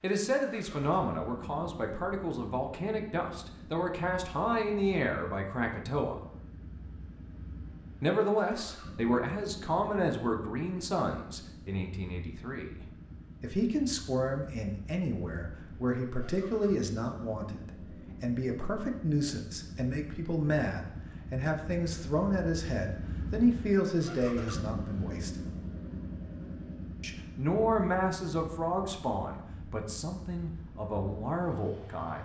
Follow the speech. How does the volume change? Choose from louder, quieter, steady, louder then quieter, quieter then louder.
steady.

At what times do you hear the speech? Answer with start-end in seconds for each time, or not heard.
0.0-6.2, 8.0-12.8, 13.4-25.3, 27.0-32.2.